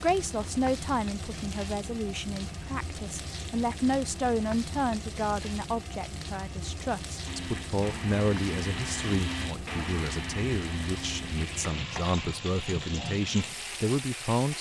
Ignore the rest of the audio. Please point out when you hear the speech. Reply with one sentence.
The speech can be heard from 0.0 to 14.5 s.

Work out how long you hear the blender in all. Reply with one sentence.
You can hear the blender for 7 seconds altogether.